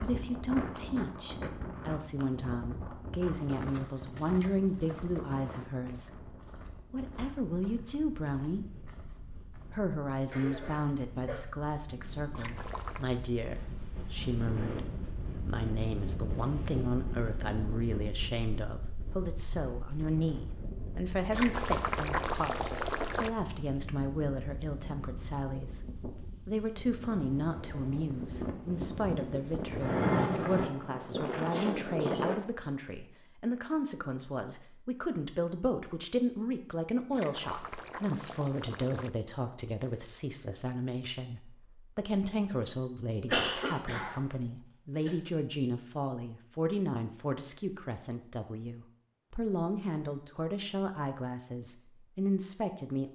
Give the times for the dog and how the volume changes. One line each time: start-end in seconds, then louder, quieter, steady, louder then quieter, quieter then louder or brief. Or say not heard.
not heard.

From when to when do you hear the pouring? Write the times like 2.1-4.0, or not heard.
12.3-13.1, 21.3-23.3, 37.1-39.1.